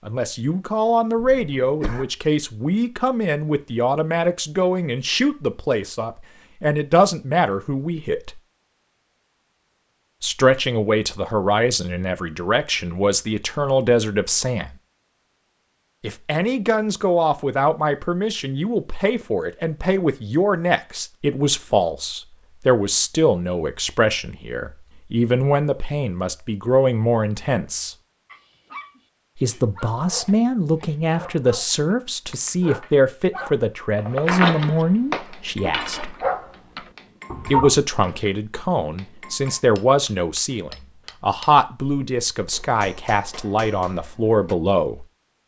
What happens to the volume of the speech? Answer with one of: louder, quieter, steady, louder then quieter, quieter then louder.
steady.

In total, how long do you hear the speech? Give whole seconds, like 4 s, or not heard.
39 s.